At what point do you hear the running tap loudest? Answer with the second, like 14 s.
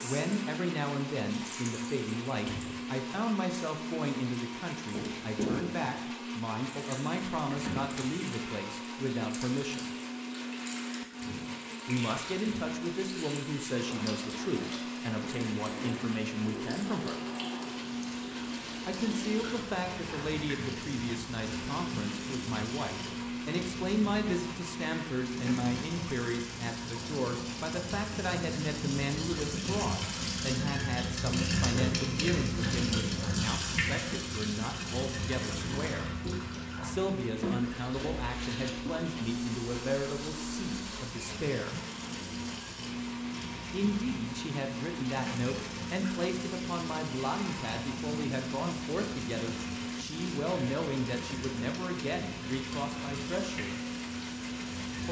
32 s.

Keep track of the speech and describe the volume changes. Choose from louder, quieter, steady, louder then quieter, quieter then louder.
steady.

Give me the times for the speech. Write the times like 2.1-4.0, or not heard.
0.0-9.9, 11.8-17.1, 18.9-36.1, 36.8-41.8, 43.7-53.8.